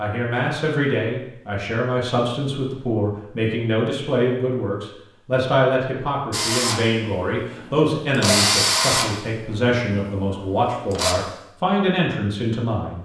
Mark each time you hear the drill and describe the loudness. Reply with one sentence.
You can hear the drill from 6.3 to 11.2 s, getting louder then quieter.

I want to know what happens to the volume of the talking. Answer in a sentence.
The loudness of the talking stays about the same.